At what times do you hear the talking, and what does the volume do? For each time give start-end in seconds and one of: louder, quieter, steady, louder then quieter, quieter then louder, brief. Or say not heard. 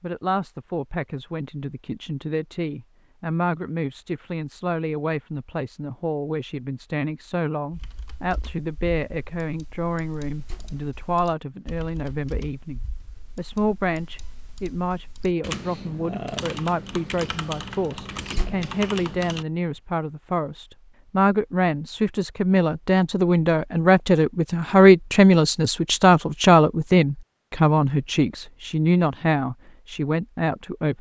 0.0-30.9 louder.